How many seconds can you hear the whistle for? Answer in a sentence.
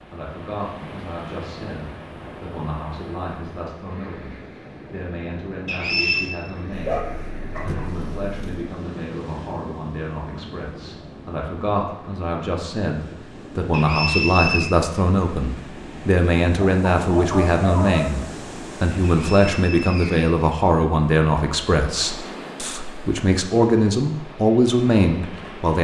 You can hear the whistle for 3 seconds altogether.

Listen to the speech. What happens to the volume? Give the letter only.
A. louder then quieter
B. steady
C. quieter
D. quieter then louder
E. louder
E.